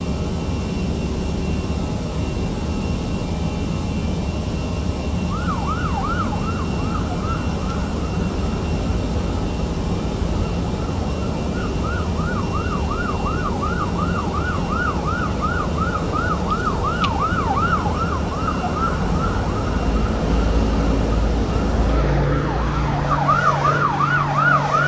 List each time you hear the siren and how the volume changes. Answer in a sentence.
You can hear the siren from 5.3 to 24.8 s, getting louder.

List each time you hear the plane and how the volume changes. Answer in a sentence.
You can hear the plane from 0.0 to 24.8 s, at a steady volume.